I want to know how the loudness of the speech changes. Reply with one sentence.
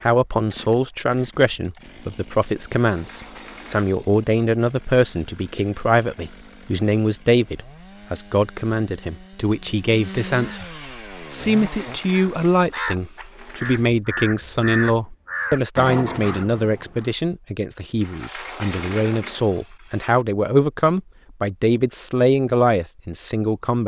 The volume of the speech stays about the same.